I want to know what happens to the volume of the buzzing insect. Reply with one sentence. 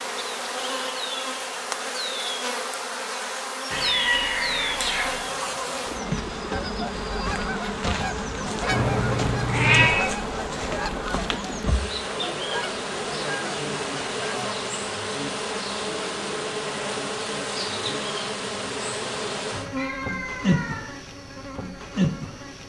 The loudness of the buzzing insect stays about the same.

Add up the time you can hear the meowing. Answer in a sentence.
You can hear the meowing for 4 seconds altogether.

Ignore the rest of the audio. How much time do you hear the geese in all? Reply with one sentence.
The geese can be heard for 10 seconds in total.